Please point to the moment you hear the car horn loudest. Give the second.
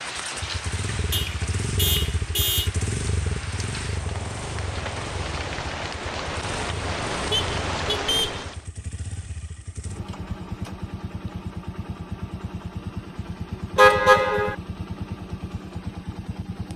14 s.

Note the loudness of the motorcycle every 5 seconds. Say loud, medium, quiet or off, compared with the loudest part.
loud, medium, loud, loud.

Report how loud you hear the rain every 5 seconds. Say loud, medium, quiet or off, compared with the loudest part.
medium, loud, off, off.